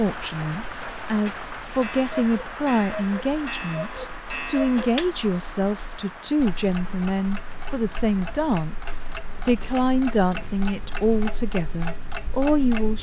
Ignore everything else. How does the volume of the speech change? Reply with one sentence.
The volume of the speech stays about the same.